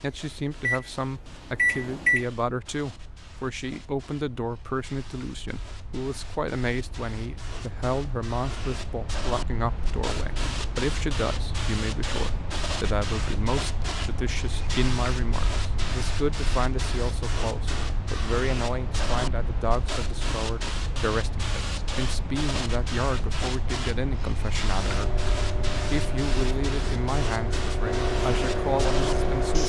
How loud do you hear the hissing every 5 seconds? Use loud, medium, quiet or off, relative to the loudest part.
quiet, medium, loud, loud, loud, loud.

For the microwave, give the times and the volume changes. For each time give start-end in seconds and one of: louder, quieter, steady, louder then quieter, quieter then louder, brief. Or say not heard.
0.1-2.2 brief
24.8-29.6 louder.